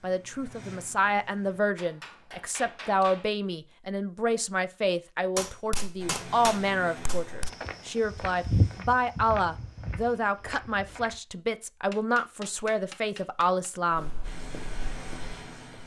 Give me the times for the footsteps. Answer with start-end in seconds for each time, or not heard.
7.5-11.2, 13.9-15.8.